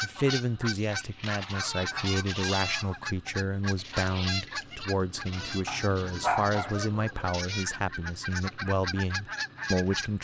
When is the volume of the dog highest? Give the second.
6 s.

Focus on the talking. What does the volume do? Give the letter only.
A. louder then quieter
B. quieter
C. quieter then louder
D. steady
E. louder
D.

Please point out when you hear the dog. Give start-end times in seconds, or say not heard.
1.3-3.0, 5.7-7.3.